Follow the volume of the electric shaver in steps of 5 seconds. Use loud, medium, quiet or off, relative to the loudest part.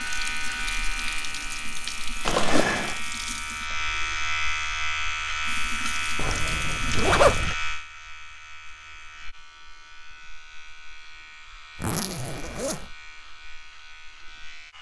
loud, loud, quiet.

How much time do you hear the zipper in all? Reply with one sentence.
You can hear the zipper for 3 seconds altogether.